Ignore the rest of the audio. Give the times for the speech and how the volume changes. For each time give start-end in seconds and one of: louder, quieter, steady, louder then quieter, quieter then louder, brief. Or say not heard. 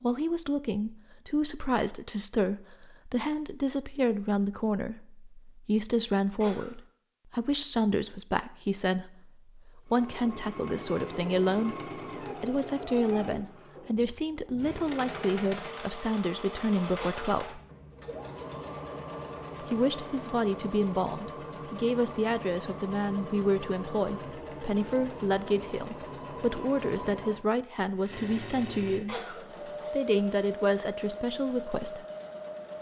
0.0-17.6 steady
19.6-32.0 steady.